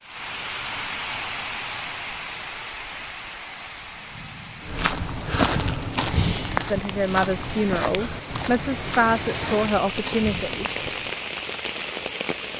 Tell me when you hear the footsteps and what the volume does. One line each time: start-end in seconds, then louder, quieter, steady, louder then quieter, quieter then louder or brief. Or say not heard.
4.6-11.2 quieter.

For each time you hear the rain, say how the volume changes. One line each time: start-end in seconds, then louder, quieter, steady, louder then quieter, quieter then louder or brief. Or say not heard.
0.0-12.5 quieter then louder.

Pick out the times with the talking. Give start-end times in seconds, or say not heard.
6.7-10.7.